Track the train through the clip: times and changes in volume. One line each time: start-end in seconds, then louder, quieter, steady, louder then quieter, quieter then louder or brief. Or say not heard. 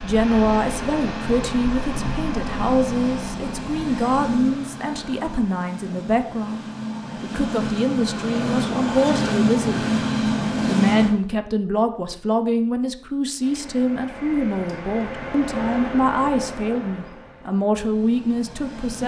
0.0-11.2 quieter then louder
13.3-19.0 louder then quieter.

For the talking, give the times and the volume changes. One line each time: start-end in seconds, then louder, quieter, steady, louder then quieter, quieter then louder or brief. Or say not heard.
0.0-6.6 steady
7.2-9.8 brief
10.7-19.0 steady.